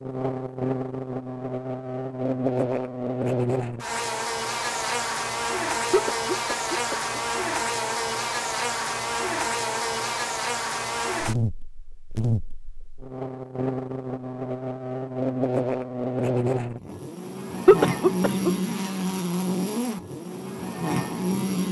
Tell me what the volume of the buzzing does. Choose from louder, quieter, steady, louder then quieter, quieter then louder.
steady.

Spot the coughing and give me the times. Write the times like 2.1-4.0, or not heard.
5.9-7.2, 17.6-18.6.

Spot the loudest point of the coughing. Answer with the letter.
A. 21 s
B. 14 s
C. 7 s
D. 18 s
D.